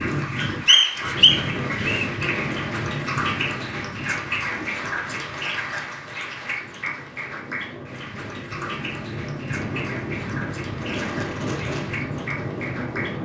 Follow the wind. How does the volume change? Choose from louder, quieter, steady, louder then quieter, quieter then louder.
quieter then louder.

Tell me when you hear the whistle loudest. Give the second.
1 s.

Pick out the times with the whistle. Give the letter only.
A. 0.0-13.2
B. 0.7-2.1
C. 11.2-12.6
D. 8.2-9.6
B.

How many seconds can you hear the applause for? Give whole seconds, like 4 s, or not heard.
13 s.